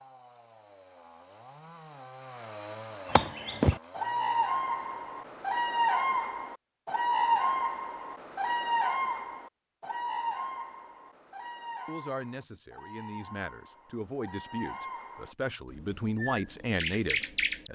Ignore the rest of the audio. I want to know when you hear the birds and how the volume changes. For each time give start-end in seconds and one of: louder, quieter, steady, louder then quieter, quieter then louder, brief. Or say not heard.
3.0-17.7 quieter then louder.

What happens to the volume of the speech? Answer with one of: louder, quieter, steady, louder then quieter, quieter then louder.
louder.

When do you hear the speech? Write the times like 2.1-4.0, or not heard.
11.8-17.7.